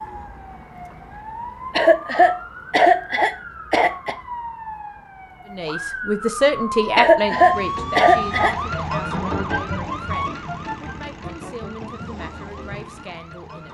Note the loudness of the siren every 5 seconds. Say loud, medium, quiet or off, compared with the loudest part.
medium, loud, medium.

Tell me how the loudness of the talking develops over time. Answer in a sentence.
The loudness of the talking goes down.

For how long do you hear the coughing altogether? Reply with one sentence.
The coughing can be heard for 4 seconds in total.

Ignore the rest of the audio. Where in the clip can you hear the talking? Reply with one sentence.
You can hear the talking from 5.5 to 13.6 s.